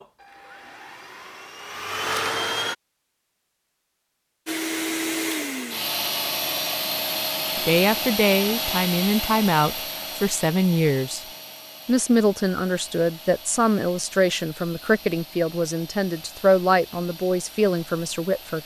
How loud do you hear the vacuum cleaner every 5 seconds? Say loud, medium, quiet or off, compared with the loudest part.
loud, loud, quiet, quiet.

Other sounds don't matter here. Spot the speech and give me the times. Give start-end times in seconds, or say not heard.
7.5-11.2, 11.8-18.6.